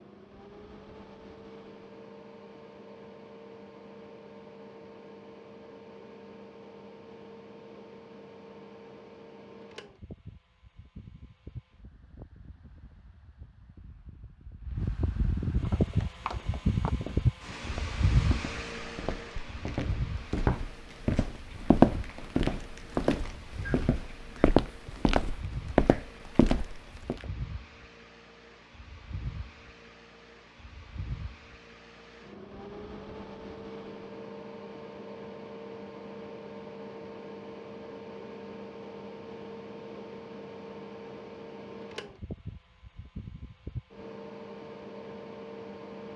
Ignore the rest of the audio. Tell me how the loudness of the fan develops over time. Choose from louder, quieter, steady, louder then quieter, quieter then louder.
louder then quieter.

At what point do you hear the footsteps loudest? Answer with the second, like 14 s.
22 s.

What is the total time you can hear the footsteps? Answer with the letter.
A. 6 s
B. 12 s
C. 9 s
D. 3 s
B.